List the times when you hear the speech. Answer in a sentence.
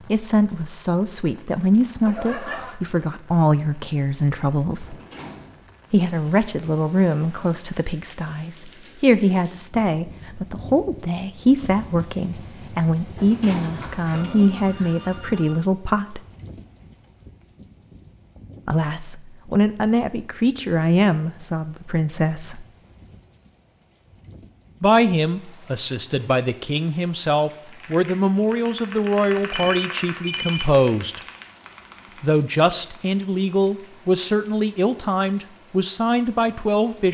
You can hear the speech from 0.1 to 5.0 s, from 5.9 to 16.2 s, from 18.6 to 22.6 s, from 24.8 to 31.2 s and from 32.2 to 37.1 s.